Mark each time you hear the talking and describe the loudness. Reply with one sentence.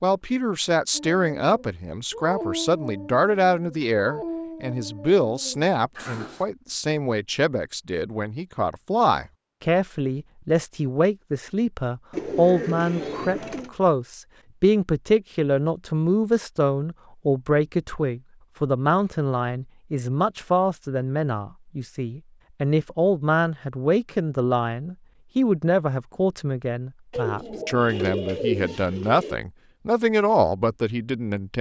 The talking can be heard from 0.0 to 31.5 s, at a steady volume.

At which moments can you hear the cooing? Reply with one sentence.
The cooing can be heard from 12.1 to 13.7 s and from 27.1 to 29.4 s.